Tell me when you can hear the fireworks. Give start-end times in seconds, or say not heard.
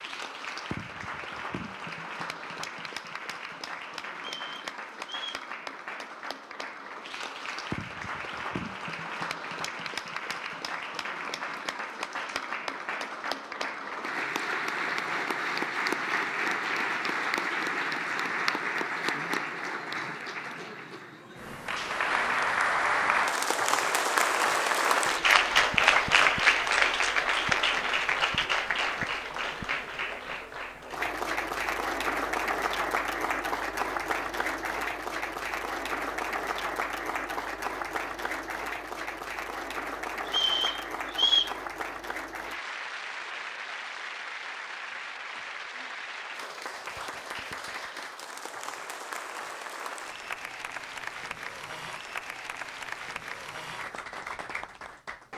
not heard.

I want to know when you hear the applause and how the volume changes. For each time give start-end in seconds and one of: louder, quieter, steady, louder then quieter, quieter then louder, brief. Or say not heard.
0.0-55.3 louder then quieter.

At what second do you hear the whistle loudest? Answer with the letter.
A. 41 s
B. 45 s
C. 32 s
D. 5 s
A.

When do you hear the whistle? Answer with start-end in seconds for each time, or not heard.
4.2-5.5, 40.2-41.5.